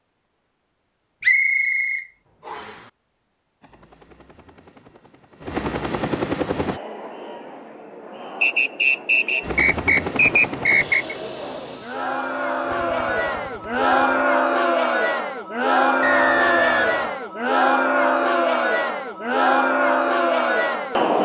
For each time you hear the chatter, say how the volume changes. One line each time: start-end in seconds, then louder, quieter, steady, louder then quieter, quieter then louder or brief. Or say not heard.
6.5-21.1 louder.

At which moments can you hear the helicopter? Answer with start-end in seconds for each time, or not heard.
3.6-6.8, 9.4-14.2.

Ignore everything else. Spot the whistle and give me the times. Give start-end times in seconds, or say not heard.
1.2-2.8, 8.4-11.2, 16.0-17.2.